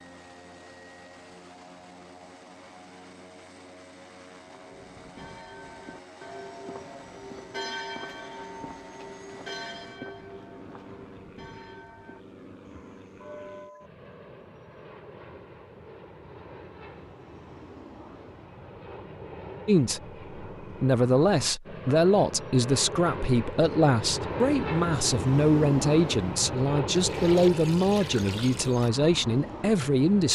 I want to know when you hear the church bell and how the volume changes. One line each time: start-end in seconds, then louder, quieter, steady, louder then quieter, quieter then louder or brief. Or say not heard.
4.3-13.9 louder then quieter.